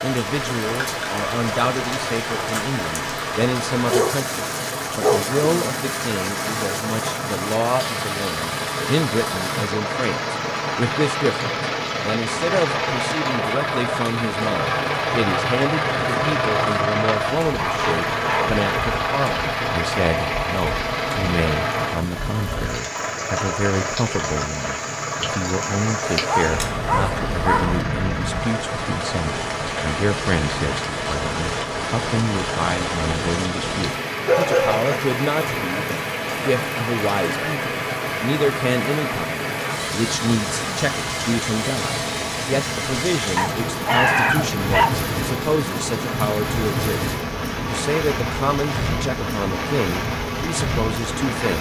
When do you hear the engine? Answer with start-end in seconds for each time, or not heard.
0.2-51.5.